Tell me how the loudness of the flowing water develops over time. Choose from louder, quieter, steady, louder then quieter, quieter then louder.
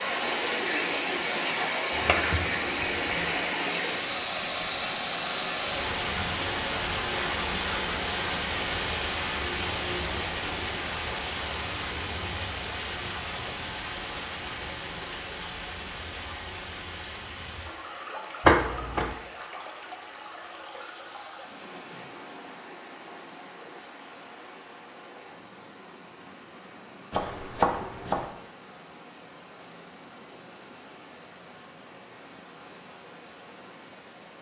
quieter.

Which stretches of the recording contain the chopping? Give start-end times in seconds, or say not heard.
1.9-3.4, 18.4-19.1, 27.1-28.2.